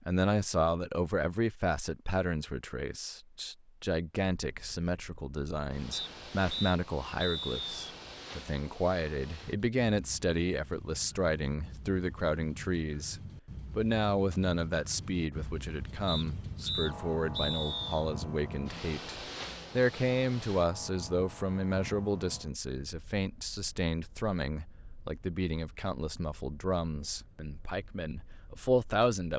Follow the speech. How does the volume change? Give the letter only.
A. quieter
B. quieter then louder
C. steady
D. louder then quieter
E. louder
C.